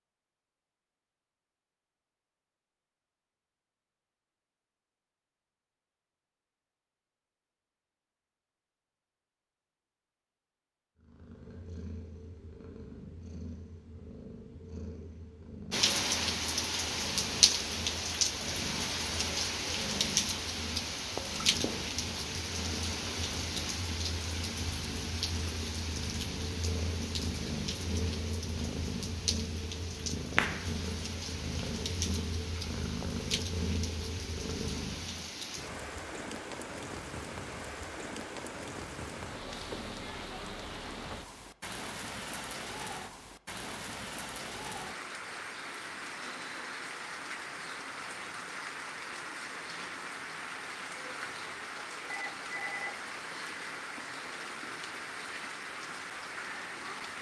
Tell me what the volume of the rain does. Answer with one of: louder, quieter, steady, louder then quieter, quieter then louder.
quieter.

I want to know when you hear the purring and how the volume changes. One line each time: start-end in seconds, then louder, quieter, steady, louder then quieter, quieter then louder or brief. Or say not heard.
10.9-35.3 louder.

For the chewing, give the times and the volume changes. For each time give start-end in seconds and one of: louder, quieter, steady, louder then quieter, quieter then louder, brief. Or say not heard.
not heard.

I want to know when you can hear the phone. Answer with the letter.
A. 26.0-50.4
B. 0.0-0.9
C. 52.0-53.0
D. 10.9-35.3
C.